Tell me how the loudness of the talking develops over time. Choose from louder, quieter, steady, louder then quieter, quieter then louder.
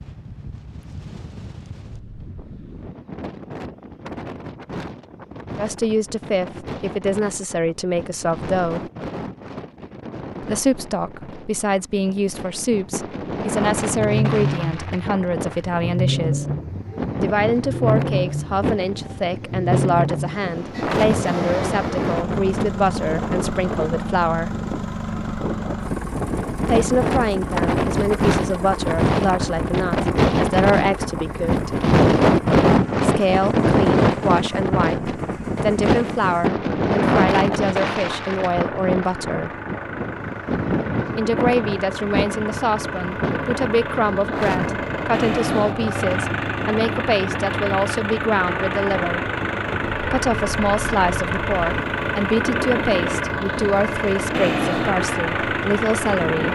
steady.